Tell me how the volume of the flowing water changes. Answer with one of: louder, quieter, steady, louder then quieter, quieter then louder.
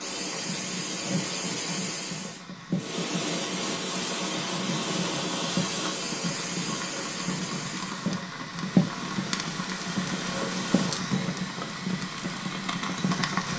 quieter.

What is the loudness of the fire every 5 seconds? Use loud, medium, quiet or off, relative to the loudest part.
medium, loud, loud.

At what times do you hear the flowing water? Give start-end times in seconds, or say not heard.
0.0-10.9.